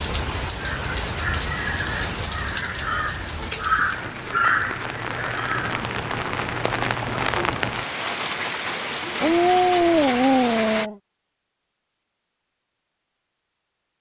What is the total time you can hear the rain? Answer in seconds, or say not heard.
11 s.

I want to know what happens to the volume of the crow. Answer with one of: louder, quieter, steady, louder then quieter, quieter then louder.
louder then quieter.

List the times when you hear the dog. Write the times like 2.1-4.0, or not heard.
9.2-10.9.